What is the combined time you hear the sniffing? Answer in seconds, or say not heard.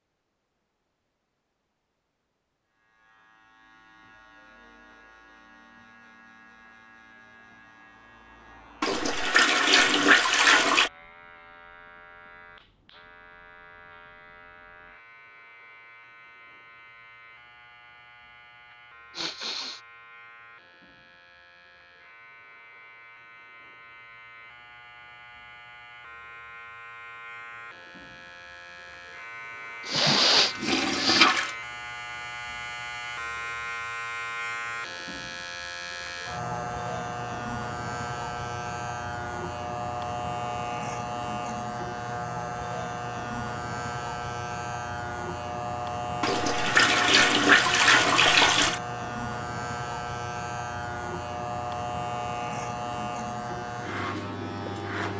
2 s.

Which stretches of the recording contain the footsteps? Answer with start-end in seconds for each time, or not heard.
not heard.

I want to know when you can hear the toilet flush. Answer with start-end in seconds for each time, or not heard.
8.8-10.9, 29.9-31.5, 46.2-48.8.